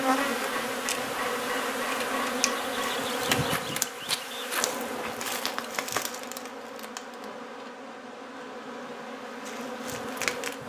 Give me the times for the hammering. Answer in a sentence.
You can hear the hammering from 0.1 to 2.9 s.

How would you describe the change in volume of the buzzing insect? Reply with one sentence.
The loudness of the buzzing insect goes down.